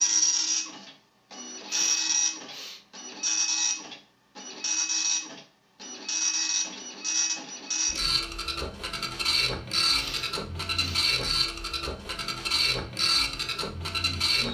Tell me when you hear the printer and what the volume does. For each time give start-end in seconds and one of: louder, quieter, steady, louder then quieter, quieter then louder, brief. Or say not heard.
0.0-14.4 steady.